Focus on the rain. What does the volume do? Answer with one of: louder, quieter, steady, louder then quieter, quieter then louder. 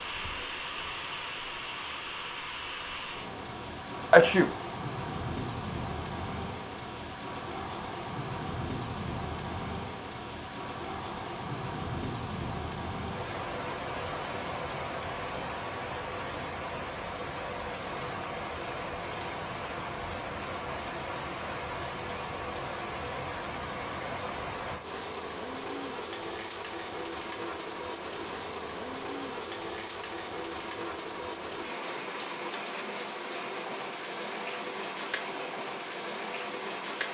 steady.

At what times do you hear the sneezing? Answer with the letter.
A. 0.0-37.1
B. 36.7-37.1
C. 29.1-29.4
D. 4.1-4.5
D.